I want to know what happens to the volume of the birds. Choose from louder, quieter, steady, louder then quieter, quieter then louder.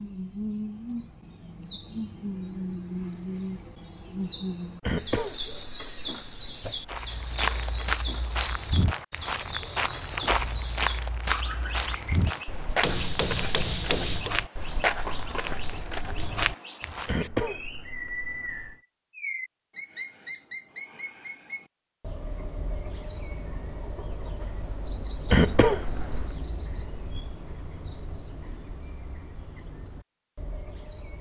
quieter.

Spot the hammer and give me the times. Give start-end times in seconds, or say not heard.
12.8-14.3.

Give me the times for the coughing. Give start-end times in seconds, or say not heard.
4.8-7.0, 17.1-18.8, 25.2-26.4.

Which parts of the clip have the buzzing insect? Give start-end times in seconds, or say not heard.
not heard.